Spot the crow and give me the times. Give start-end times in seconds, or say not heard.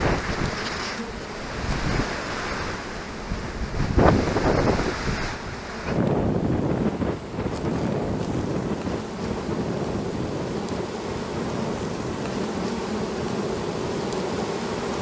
not heard.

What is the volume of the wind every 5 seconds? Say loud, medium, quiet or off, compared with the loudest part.
loud, loud, medium.